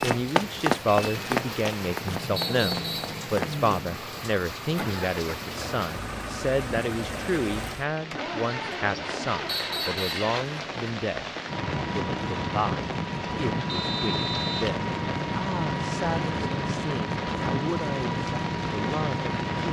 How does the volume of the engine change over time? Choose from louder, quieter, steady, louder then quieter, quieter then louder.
louder.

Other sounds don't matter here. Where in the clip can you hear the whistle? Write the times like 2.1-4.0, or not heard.
2.4-3.1, 9.4-10.2, 13.7-14.7.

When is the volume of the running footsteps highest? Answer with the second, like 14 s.
1 s.